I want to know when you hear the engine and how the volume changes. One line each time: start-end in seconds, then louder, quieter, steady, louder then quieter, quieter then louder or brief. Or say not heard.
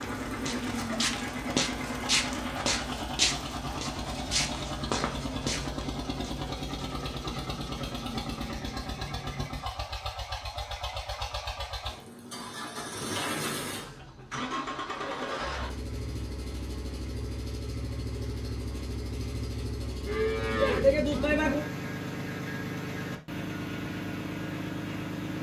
0.0-25.3 steady.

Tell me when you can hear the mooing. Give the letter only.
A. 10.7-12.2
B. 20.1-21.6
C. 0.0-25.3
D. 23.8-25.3
B.